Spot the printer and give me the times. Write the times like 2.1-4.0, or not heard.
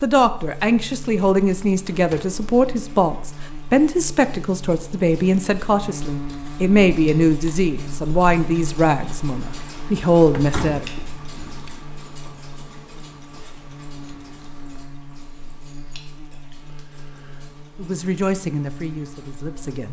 not heard.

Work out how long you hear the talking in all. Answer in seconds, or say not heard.
13 s.